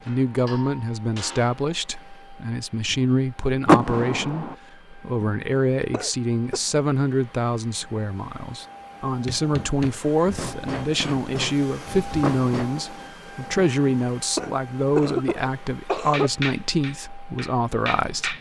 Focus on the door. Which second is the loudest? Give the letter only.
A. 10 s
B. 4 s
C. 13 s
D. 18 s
B.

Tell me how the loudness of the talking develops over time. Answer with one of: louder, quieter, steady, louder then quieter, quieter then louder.
steady.